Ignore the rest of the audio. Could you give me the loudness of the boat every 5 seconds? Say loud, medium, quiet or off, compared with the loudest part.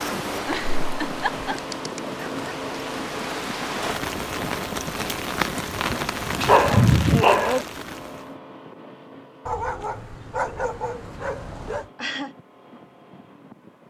loud, loud, quiet.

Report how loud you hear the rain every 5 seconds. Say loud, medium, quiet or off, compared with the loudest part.
loud, loud, off.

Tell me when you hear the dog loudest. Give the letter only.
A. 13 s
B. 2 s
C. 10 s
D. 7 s
D.